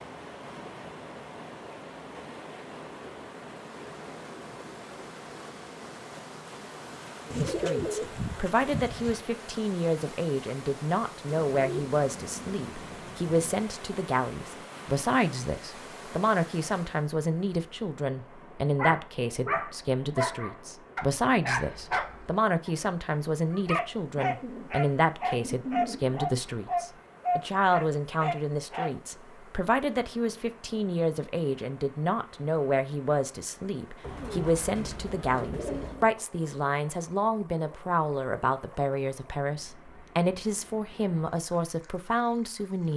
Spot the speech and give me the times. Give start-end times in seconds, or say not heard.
7.2-42.9.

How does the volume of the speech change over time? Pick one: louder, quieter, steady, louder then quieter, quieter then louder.
steady.